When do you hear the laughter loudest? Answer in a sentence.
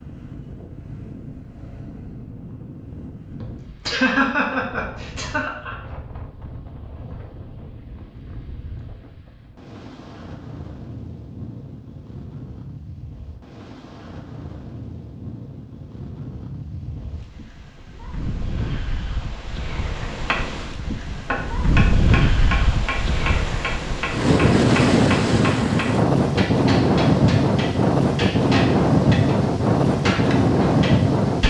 The loudest moment of the laughter is at 4 seconds.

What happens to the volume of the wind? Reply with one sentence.
The loudness of the wind goes up.